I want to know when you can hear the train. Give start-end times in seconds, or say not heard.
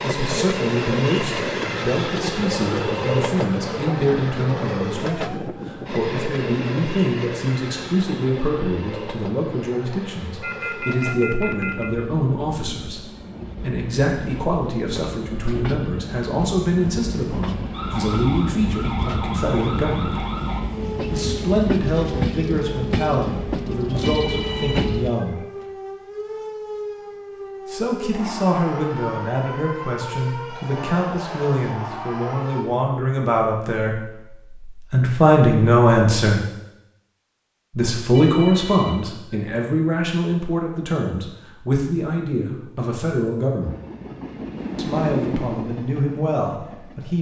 0.0-25.1, 43.6-47.1.